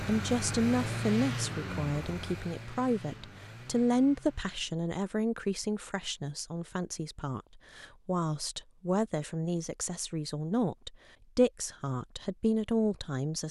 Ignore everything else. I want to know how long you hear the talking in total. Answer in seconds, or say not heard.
13 s.